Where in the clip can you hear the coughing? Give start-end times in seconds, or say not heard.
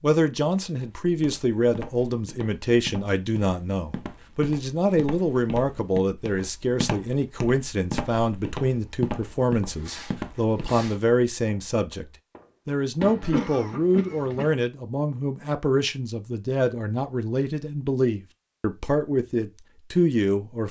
13.2-14.6.